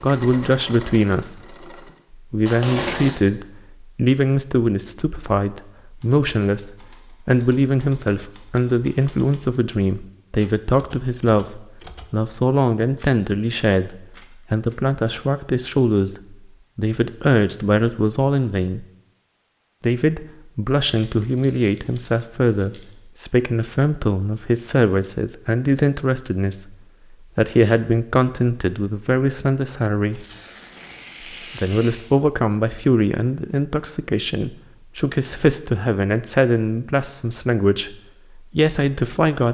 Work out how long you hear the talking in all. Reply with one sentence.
The talking can be heard for 37 seconds in total.